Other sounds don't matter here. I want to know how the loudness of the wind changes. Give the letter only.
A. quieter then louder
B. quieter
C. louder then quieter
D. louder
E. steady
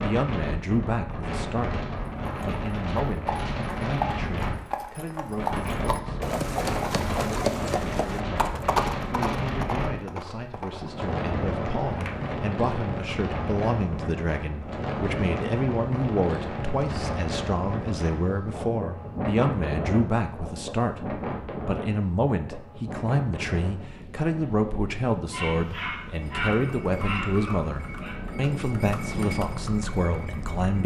B.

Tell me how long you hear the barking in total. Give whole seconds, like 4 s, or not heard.
3 s.